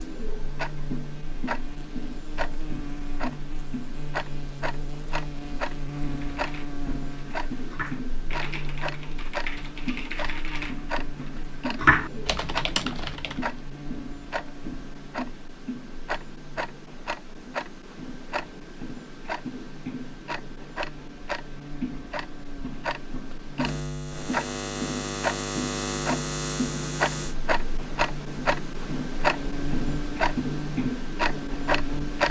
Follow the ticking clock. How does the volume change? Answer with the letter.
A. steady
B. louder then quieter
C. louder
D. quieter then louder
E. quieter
C.